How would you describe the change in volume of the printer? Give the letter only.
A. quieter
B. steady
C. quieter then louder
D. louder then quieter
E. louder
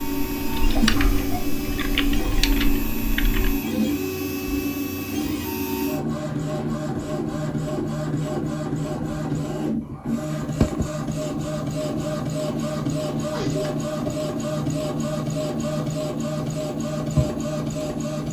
B.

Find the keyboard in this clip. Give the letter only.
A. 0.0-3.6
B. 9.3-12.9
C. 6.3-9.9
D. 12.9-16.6
A.